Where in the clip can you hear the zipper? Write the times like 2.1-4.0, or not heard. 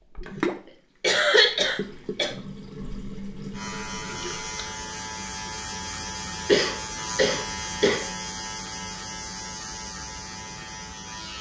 not heard.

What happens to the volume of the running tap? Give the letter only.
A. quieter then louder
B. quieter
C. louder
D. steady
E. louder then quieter
B.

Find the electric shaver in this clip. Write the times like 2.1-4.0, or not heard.
3.5-11.3.